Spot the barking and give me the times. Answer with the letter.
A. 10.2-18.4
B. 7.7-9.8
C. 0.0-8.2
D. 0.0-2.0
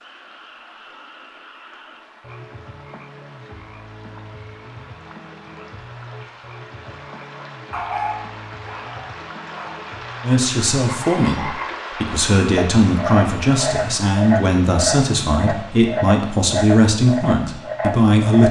B.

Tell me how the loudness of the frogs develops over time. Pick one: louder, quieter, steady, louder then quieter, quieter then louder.
louder.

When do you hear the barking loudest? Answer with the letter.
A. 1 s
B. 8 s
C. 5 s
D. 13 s
B.